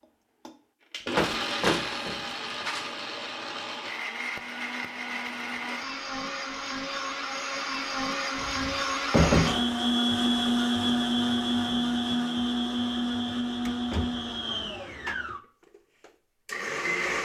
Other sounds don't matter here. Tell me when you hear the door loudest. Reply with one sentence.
The volume of the door peaks at 9 seconds.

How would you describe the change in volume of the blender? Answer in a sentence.
The volume of the blender goes up, then down.